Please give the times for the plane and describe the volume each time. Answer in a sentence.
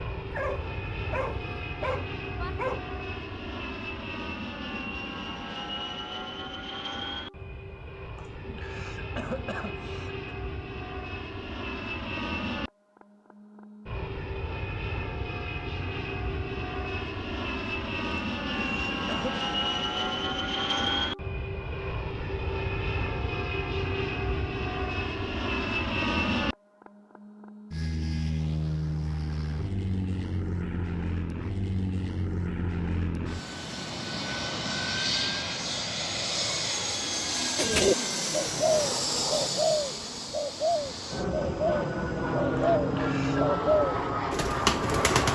The plane can be heard from 0.0 to 45.3 s, getting louder.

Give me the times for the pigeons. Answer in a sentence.
The pigeons can be heard from 37.5 to 45.3 s.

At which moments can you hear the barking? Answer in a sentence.
The barking can be heard from 0.3 to 2.9 s.